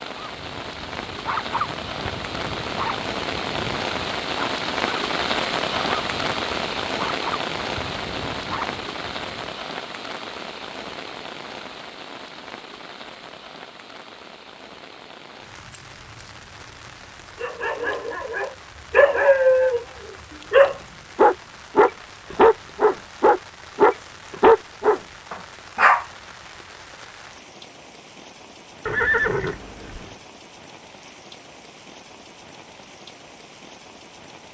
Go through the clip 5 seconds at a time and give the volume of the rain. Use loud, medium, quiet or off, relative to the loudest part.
loud, loud, medium, quiet, quiet, quiet, quiet.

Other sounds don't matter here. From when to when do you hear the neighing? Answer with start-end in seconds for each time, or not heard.
28.9-30.1.